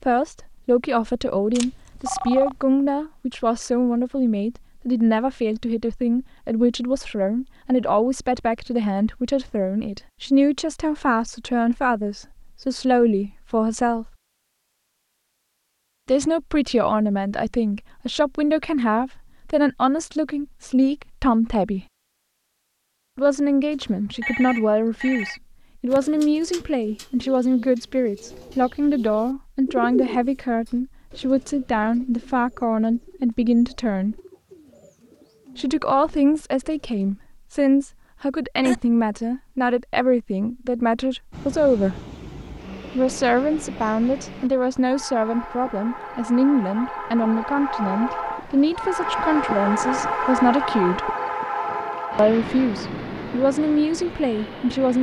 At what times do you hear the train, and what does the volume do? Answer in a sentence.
The train can be heard from 41.3 to 54.9 s, getting louder then quieter.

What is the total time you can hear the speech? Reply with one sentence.
The speech can be heard for 48 seconds in total.